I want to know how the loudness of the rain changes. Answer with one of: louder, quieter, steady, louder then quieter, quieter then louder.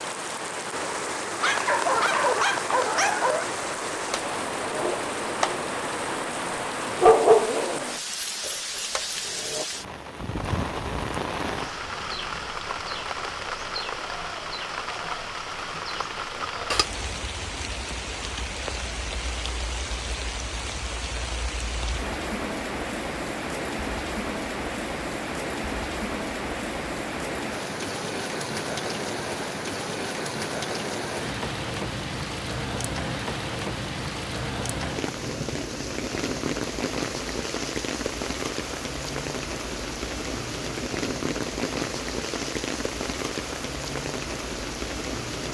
steady.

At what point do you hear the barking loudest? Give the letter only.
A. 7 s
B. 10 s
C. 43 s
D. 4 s
A.